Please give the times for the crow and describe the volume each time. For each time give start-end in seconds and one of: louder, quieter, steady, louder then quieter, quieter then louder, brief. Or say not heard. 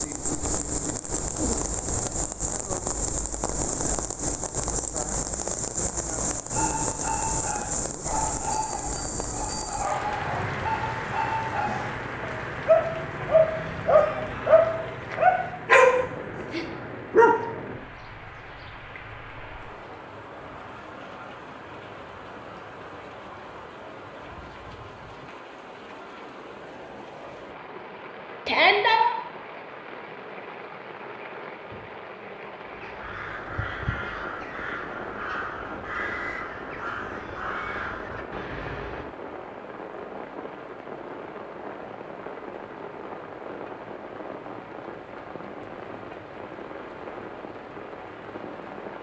32.6-39.0 steady.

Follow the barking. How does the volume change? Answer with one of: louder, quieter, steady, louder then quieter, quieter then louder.
louder.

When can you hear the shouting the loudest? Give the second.
29 s.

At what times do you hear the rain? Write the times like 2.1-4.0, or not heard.
0.0-48.9.